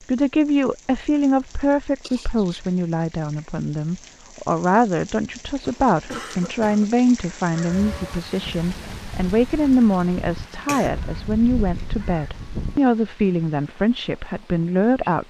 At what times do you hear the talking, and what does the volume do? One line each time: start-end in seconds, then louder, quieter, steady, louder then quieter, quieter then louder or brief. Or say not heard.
0.1-15.2 steady.